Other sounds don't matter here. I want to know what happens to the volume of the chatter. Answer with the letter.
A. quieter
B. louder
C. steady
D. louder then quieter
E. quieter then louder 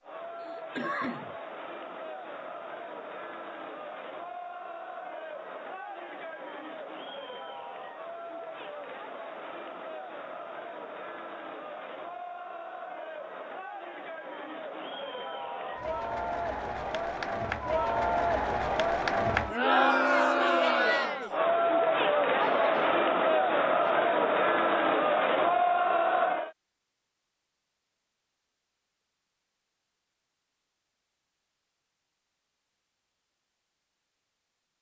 B.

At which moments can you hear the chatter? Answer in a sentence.
You can hear the chatter from 0.0 to 26.5 s.